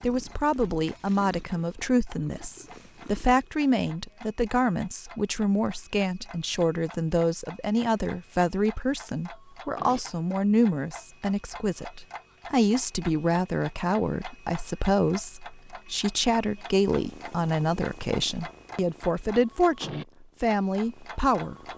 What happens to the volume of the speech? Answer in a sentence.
The volume of the speech stays about the same.